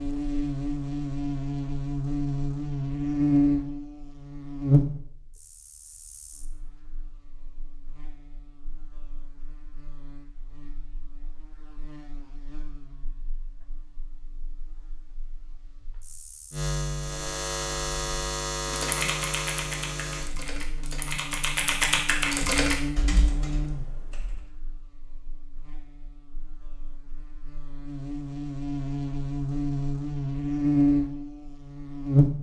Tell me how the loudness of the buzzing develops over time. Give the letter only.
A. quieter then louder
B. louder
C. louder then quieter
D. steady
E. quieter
A.